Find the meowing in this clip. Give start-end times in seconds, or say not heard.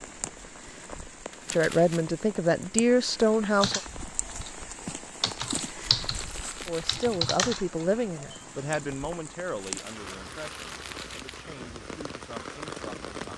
not heard.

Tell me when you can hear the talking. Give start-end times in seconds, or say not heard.
1.5-3.8, 6.7-13.3.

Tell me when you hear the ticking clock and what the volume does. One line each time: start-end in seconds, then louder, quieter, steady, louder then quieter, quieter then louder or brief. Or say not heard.
not heard.